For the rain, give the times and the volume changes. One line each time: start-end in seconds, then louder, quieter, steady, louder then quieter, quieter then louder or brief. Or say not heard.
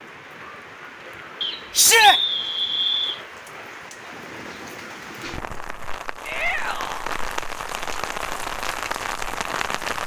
0.0-10.0 louder.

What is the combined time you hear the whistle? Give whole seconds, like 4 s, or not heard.
2 s.